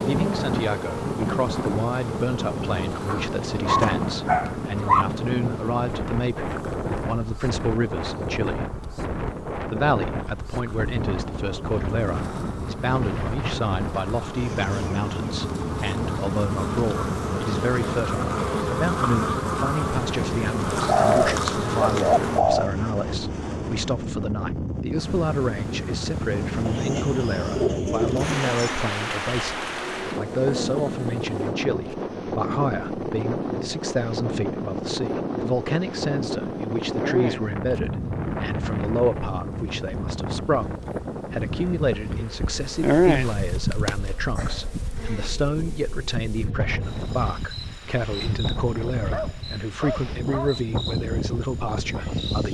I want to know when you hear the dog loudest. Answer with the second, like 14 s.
5 s.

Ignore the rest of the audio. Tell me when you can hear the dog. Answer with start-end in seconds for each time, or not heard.
3.0-5.0, 49.1-50.6.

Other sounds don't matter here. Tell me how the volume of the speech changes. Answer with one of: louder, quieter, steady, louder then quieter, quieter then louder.
steady.